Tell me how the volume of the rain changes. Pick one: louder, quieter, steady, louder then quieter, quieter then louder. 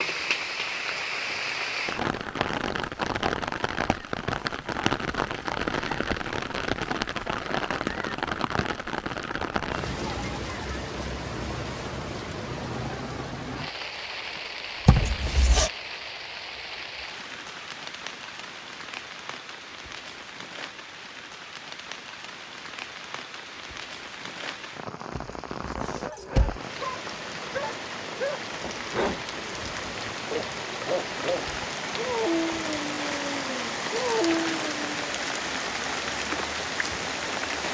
quieter then louder.